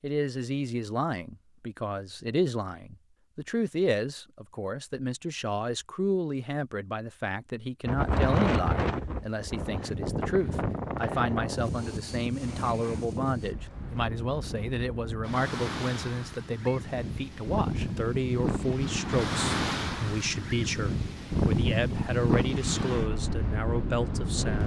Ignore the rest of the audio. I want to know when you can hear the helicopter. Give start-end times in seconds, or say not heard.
not heard.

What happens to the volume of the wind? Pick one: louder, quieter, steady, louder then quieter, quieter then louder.
quieter then louder.